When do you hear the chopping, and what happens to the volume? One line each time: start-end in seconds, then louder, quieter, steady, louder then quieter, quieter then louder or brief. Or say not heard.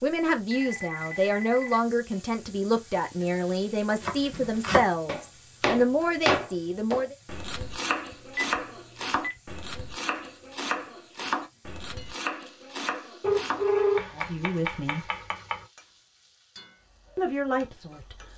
4.0-15.7 quieter.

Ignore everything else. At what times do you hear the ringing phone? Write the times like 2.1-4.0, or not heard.
0.5-1.8, 8.1-9.3, 13.2-14.1.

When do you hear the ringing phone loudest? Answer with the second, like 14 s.
14 s.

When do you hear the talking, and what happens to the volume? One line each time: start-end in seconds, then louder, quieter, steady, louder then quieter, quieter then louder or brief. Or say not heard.
0.0-7.2 steady
14.1-15.1 brief
17.1-18.3 brief.